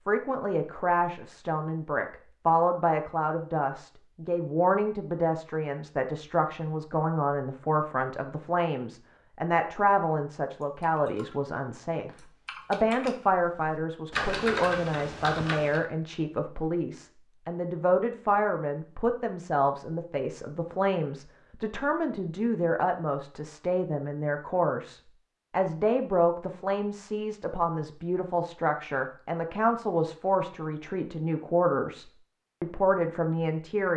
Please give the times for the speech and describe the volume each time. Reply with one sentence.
The speech can be heard from 0.1 to 33.9 s, at a steady volume.